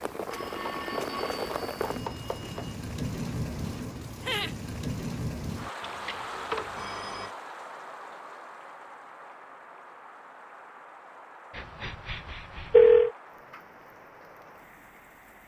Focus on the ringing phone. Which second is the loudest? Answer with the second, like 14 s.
13 s.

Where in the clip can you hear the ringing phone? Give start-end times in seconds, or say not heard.
0.3-2.8, 5.8-7.3, 11.6-13.1.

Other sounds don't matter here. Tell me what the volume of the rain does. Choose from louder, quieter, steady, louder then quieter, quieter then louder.
quieter.